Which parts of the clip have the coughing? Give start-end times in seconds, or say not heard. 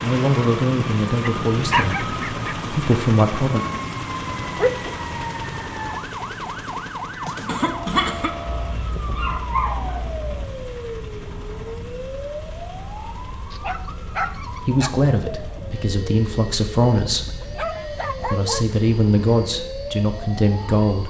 7.5-8.3.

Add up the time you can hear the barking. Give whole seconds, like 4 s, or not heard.
7 s.